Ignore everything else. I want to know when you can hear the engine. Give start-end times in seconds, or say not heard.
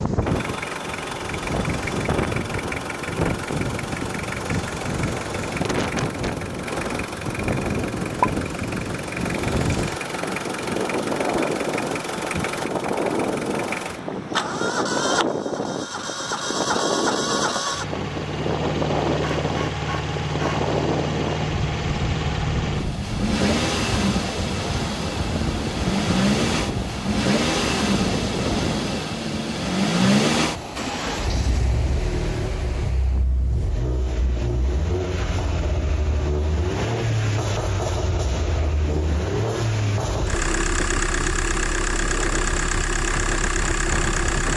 0.0-44.5.